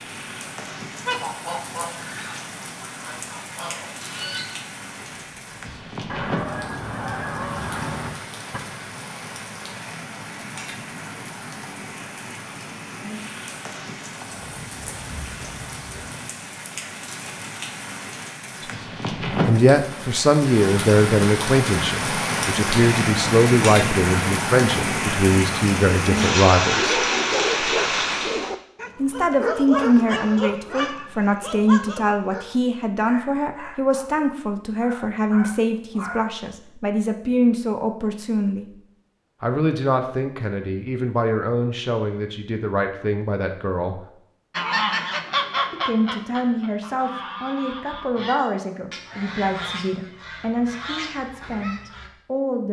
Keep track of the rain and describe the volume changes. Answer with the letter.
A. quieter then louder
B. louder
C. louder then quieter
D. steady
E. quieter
B.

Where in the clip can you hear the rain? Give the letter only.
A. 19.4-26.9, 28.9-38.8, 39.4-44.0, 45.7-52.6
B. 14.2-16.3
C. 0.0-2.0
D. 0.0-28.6
D.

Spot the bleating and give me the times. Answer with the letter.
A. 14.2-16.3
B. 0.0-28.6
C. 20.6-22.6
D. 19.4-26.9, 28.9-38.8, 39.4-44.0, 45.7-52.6
A.